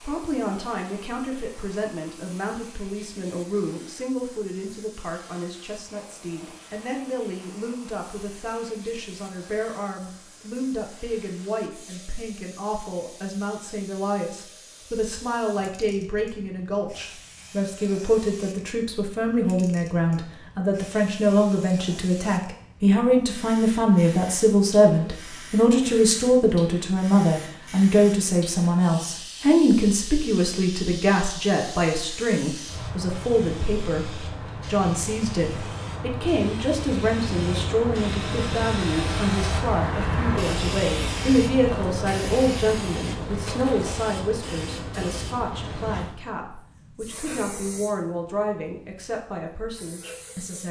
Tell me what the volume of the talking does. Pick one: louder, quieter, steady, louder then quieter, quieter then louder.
louder then quieter.